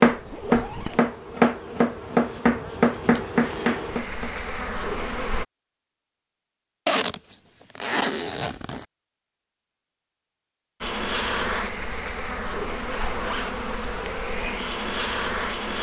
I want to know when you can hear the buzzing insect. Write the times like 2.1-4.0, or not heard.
0.0-5.5, 10.8-15.7.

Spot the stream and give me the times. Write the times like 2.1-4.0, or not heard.
not heard.